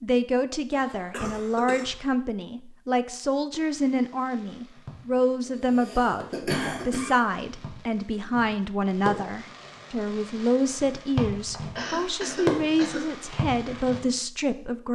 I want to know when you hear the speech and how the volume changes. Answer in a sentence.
The speech can be heard from 0.0 to 14.9 s, at a steady volume.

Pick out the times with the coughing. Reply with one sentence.
You can hear the coughing from 0.7 to 1.9 s, from 5.5 to 7.2 s and from 11.8 to 13.2 s.